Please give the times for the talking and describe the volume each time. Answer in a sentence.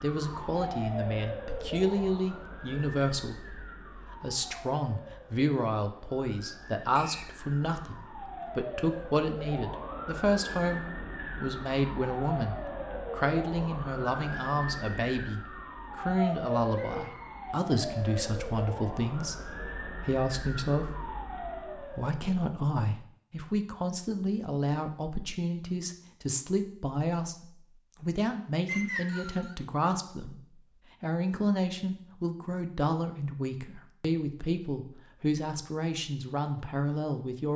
You can hear the talking from 0.0 to 30.4 s, at a steady volume; and from 31.0 to 37.5 s, at a steady volume.